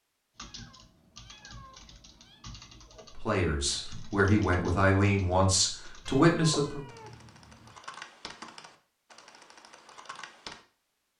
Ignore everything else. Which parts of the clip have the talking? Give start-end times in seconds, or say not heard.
3.1-6.8.